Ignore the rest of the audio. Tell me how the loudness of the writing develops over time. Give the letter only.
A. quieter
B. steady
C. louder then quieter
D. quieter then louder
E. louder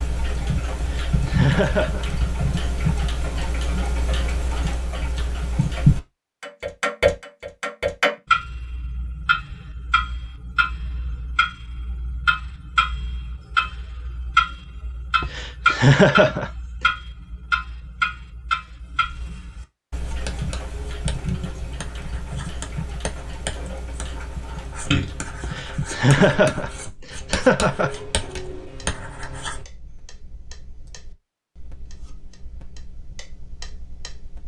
E.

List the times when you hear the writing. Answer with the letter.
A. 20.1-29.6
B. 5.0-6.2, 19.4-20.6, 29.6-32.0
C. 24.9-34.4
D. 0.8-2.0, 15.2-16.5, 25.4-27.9
A.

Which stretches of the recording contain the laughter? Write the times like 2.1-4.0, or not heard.
0.8-2.0, 15.2-16.5, 25.4-27.9.